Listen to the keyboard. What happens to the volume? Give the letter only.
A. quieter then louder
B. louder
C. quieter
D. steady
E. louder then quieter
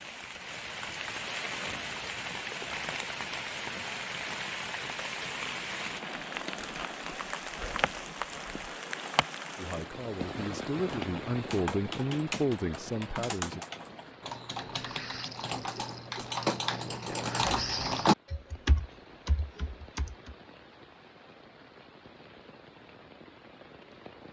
E.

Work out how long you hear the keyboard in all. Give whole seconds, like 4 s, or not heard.
10 s.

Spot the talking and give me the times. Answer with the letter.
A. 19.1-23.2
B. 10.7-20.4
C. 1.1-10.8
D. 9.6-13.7
D.